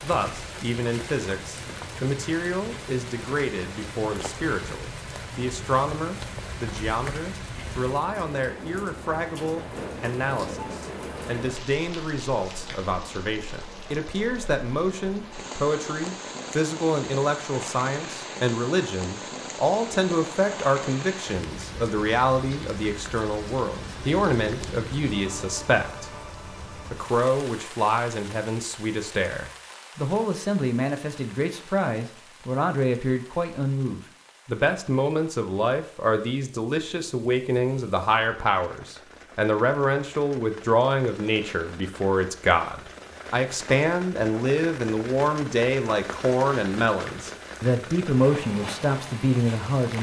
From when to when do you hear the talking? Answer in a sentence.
You can hear the talking from 0.0 to 26.1 s and from 26.9 to 49.9 s.